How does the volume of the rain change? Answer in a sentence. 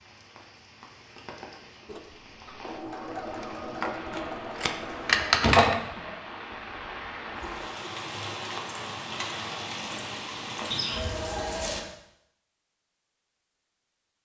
The loudness of the rain goes up.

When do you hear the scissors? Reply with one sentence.
You can hear the scissors from 3.8 to 5.8 s.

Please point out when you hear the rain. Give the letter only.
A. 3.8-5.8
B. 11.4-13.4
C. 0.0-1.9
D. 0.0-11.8
D.